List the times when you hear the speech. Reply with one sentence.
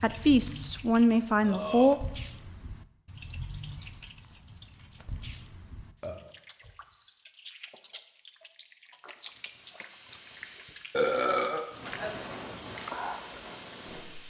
The speech can be heard from 0.0 to 2.0 s.